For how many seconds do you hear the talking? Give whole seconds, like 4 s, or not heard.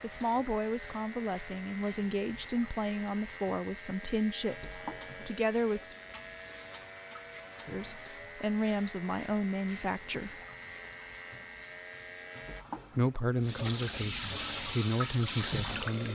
12 s.